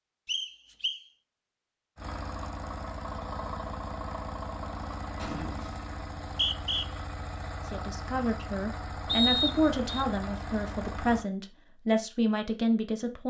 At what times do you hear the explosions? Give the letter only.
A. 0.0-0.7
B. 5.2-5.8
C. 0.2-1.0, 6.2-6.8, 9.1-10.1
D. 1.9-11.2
B.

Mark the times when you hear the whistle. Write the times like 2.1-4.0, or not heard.
0.2-1.0, 6.2-6.8, 9.1-10.1.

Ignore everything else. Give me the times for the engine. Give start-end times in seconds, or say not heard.
1.9-11.2.